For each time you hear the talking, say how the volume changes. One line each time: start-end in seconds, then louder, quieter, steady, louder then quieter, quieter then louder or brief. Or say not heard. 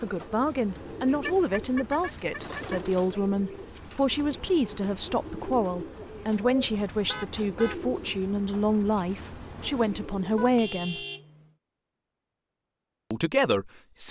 0.0-11.1 steady
13.1-14.0 brief.